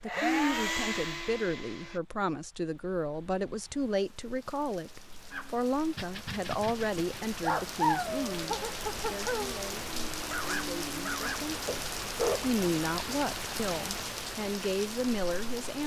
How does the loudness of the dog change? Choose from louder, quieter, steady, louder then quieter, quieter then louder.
louder then quieter.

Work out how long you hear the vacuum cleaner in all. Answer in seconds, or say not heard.
2 s.